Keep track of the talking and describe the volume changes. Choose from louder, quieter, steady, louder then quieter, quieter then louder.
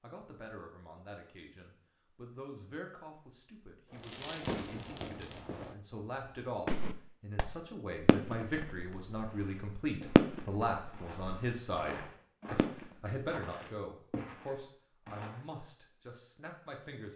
louder then quieter.